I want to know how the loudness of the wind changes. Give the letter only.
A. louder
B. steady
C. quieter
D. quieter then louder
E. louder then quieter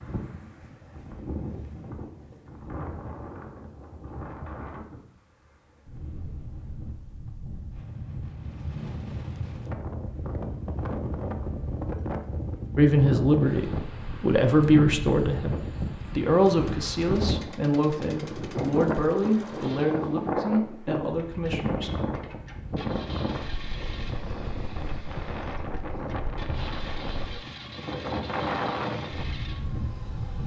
A.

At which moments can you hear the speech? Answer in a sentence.
The speech can be heard from 12.8 to 15.6 s and from 16.1 to 21.9 s.